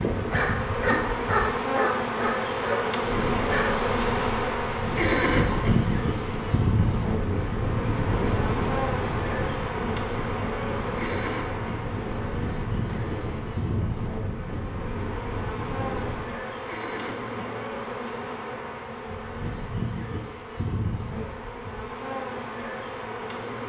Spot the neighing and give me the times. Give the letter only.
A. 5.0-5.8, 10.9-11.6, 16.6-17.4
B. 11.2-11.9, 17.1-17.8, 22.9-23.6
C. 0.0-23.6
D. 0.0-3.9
A.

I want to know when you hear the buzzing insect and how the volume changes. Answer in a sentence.
You can hear the buzzing insect from 0.0 to 23.6 s, getting quieter.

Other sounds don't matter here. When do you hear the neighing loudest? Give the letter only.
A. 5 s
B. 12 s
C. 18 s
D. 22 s
A.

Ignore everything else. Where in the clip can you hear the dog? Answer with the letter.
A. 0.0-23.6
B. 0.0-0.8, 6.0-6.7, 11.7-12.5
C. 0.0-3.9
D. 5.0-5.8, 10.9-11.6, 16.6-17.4
C.